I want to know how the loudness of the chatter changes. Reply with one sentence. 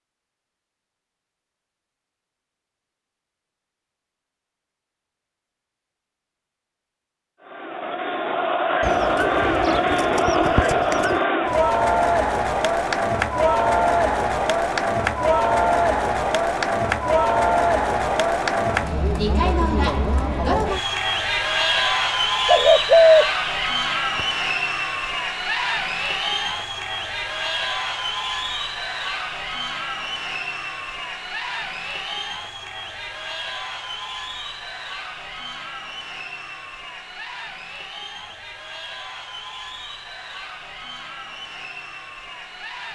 The loudness of the chatter goes down.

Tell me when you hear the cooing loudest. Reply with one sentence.
The volume of the cooing peaks at 23 seconds.